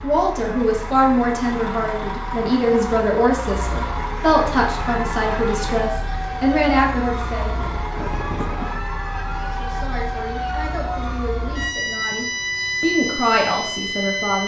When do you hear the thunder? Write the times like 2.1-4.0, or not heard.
7.5-8.8.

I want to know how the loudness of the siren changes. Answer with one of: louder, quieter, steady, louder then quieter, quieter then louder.
louder.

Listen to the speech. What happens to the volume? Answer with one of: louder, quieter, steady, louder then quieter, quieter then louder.
quieter then louder.